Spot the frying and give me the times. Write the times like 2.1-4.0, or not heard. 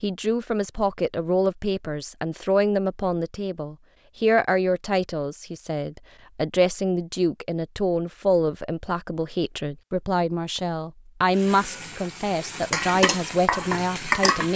11.3-14.5.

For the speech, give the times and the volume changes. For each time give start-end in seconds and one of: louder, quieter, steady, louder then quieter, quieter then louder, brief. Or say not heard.
0.0-14.5 steady.